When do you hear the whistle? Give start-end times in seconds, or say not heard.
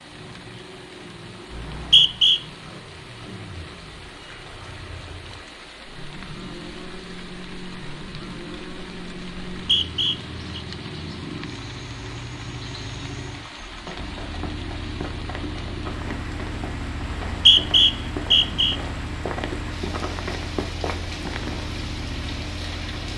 1.5-2.4, 9.6-10.6, 17.2-18.8.